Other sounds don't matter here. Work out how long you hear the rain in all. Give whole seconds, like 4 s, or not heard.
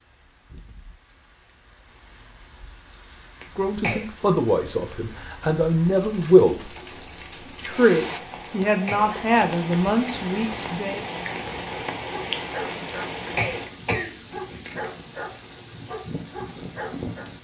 17 s.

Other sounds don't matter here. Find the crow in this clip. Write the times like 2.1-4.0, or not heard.
not heard.